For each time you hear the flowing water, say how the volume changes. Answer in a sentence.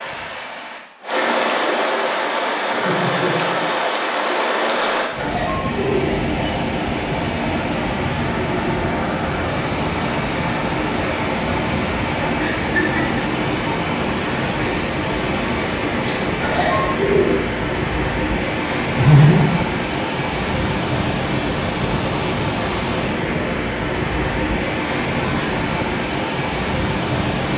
You can hear the flowing water from 0.0 to 27.5 s, at a steady volume.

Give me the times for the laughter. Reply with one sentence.
The laughter can be heard from 2.6 to 3.6 s, from 12.4 to 13.2 s and from 18.9 to 19.6 s.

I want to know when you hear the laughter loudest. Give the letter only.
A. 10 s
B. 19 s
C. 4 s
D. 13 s
B.